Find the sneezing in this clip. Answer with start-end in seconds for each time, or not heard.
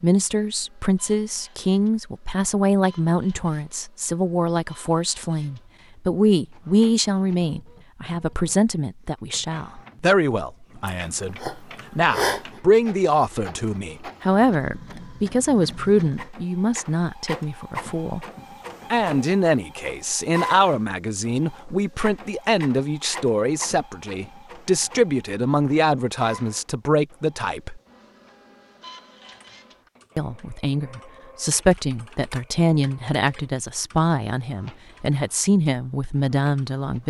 10.8-12.4.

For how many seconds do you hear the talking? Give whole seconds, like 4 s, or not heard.
34 s.